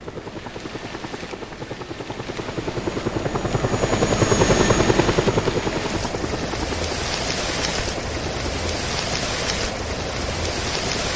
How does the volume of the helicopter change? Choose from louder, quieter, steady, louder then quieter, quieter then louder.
louder then quieter.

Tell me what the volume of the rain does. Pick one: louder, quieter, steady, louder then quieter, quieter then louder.
louder.